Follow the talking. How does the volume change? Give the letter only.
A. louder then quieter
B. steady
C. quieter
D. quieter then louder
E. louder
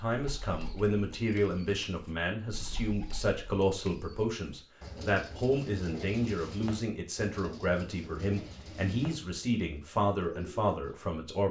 B.